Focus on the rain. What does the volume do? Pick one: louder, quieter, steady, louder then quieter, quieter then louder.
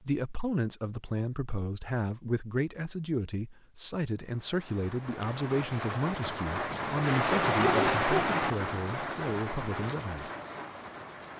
louder then quieter.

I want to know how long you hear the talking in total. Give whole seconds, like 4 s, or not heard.
10 s.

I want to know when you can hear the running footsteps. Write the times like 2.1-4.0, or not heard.
not heard.